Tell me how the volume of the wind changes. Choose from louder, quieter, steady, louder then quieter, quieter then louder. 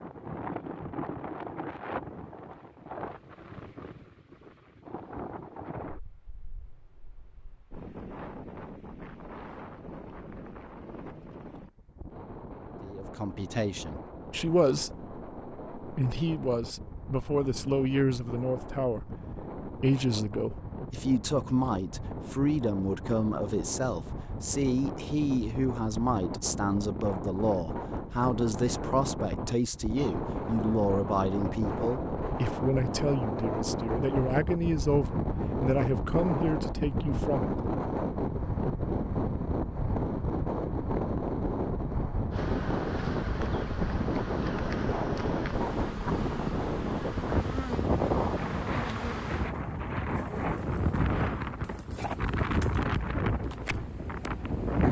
louder.